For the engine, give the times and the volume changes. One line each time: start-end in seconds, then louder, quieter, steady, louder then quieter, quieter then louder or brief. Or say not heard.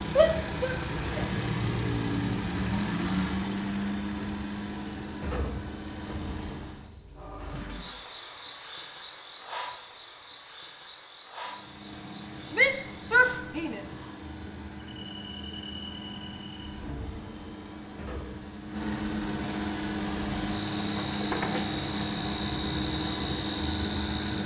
0.0-6.9 quieter
11.4-24.4 louder.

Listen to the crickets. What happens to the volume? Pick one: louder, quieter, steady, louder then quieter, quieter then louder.
quieter then louder.